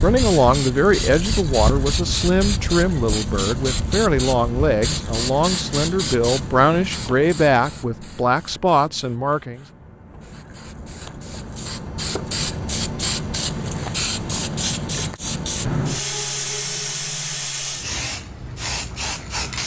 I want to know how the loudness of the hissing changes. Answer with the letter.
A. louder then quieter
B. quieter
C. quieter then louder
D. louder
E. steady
C.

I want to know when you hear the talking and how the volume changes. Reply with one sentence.
The talking can be heard from 0.0 to 9.7 s, at a steady volume.